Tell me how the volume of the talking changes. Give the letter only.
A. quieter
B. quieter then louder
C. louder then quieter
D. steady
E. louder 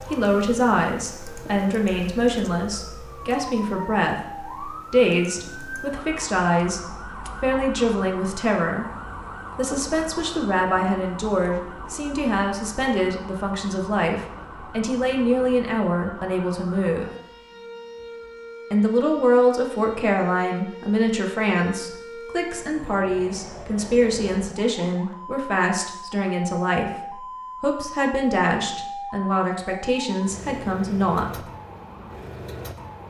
D.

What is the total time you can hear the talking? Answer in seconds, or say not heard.
29 s.